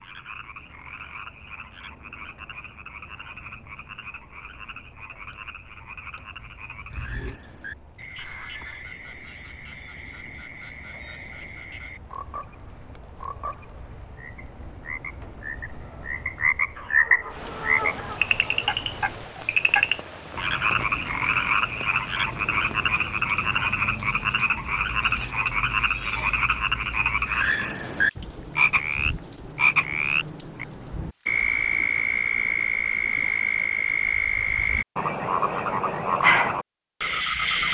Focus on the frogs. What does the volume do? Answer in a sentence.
The loudness of the frogs goes up.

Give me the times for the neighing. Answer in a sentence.
You can hear the neighing from 8.2 to 8.8 s.